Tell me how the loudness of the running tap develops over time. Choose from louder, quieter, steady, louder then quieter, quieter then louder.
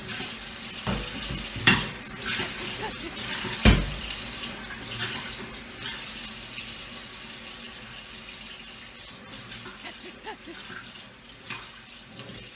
quieter.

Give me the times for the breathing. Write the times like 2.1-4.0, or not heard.
2.4-3.1, 9.8-10.6.